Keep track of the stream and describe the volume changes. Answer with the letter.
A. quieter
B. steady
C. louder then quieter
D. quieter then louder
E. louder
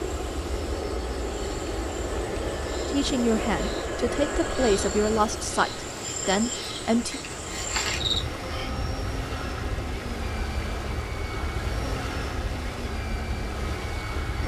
B.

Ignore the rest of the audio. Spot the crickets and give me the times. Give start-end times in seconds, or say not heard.
0.1-8.7.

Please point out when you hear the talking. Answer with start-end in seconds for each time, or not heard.
2.9-7.2.